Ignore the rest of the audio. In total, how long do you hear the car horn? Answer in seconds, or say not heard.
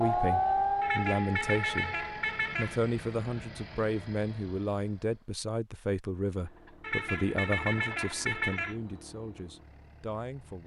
4 s.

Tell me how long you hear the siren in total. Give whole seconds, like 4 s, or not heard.
2 s.